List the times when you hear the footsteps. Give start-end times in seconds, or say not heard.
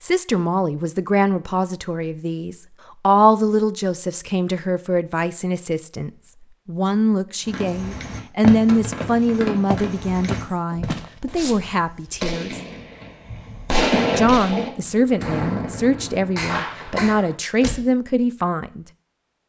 8.4-11.7.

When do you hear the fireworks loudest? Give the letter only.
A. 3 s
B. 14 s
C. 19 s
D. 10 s
B.